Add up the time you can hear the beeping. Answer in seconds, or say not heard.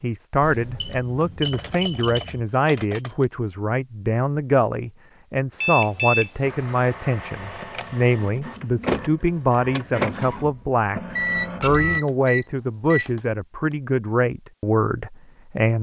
5 s.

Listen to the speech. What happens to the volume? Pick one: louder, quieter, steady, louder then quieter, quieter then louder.
steady.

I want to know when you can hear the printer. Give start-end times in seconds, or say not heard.
6.4-12.0.